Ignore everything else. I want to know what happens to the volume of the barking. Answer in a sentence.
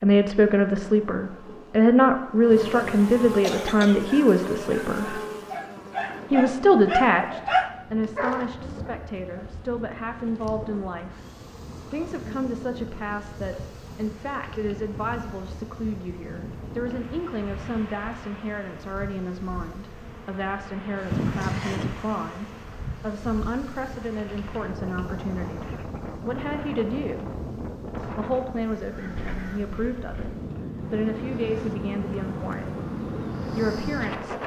The loudness of the barking goes up, then down.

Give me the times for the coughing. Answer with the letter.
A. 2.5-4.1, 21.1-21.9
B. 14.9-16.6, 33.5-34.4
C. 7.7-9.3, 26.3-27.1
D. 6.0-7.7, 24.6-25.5
A.